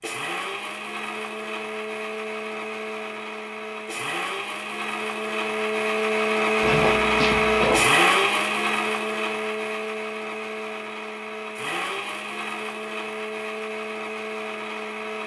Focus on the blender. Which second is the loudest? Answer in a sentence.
The loudest moment of the blender is at 8 seconds.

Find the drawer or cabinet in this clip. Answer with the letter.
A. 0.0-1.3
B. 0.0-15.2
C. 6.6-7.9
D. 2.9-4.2
C.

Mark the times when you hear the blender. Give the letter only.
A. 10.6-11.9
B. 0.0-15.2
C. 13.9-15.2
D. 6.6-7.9
B.